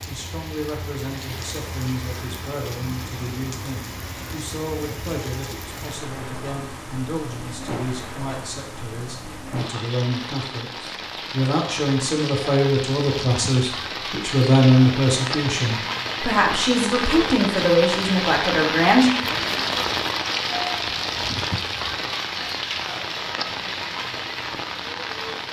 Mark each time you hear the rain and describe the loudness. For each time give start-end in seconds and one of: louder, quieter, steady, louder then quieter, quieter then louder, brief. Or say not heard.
0.0-25.4 louder.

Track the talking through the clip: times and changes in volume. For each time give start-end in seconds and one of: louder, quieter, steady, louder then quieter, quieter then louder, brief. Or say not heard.
0.1-19.1 louder.